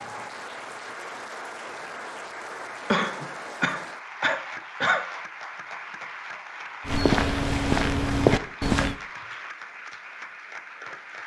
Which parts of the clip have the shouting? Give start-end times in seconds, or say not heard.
not heard.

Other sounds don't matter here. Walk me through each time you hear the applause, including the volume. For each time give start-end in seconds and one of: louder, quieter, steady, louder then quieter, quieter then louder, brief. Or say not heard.
0.0-11.2 steady.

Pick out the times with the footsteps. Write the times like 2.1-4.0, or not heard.
6.8-8.9.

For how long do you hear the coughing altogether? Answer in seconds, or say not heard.
2 s.